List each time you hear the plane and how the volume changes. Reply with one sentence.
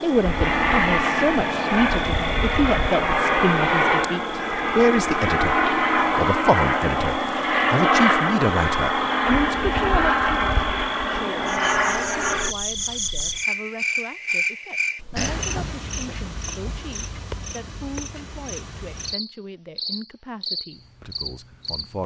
You can hear the plane from 0.0 to 12.6 s, at a steady volume.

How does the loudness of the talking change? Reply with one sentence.
The volume of the talking goes down.